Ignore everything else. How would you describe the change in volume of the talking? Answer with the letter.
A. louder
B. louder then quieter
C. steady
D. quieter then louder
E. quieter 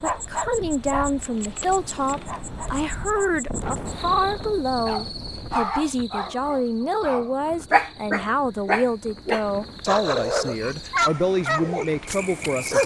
C.